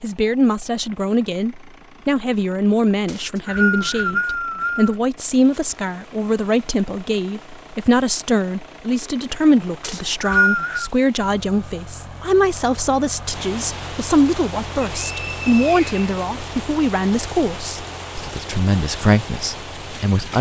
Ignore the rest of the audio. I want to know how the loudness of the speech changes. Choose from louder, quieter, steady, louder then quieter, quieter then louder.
steady.